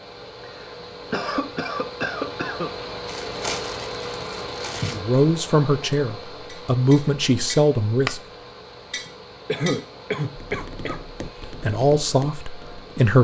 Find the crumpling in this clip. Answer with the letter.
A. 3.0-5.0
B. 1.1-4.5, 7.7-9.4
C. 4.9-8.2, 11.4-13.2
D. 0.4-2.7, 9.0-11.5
A.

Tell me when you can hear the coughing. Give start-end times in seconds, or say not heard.
0.4-2.7, 9.0-11.5.